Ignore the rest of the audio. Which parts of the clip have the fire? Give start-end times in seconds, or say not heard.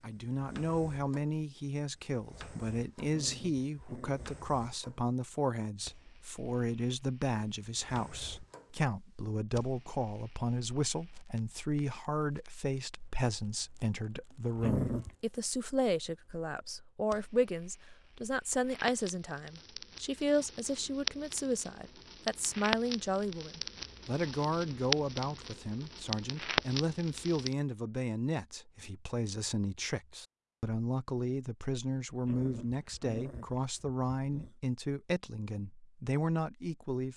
0.0-27.6.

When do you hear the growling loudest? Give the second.
15 s.